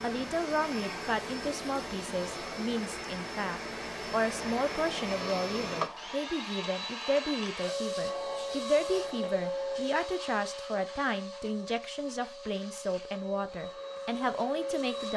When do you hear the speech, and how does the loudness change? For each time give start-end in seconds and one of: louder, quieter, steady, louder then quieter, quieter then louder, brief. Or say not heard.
0.0-15.1 steady.